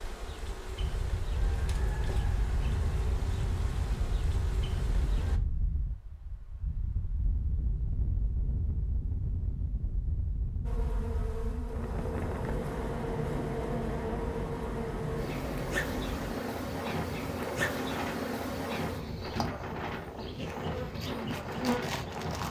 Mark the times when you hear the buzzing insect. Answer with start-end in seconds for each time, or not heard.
0.0-5.4, 10.6-22.4.